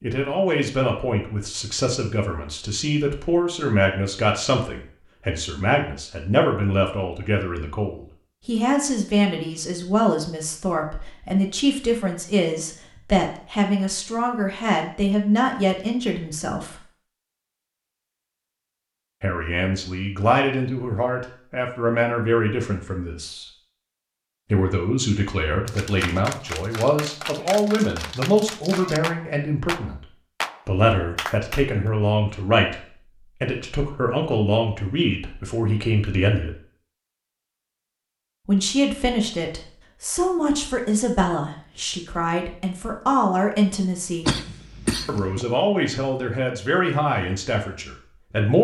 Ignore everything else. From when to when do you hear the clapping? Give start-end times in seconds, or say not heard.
25.6-31.6.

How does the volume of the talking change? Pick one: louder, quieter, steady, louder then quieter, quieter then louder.
steady.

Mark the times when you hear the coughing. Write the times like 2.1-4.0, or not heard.
44.2-45.5.